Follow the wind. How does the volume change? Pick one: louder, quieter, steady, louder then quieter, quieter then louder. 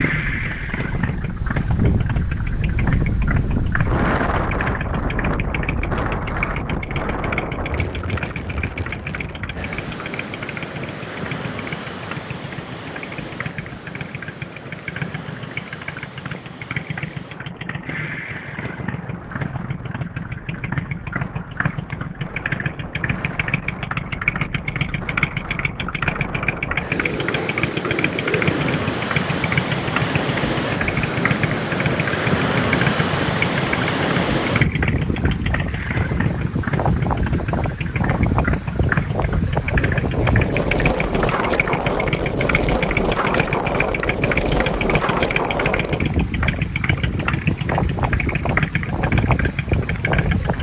quieter then louder.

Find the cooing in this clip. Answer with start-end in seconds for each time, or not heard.
26.9-28.9.